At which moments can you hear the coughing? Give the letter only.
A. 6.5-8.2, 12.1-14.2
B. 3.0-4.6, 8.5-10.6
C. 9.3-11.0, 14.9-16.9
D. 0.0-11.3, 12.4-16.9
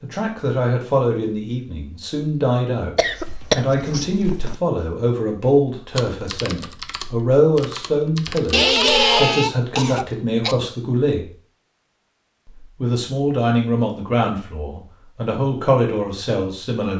B.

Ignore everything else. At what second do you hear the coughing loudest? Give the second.
9 s.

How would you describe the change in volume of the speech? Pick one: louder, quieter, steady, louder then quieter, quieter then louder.
steady.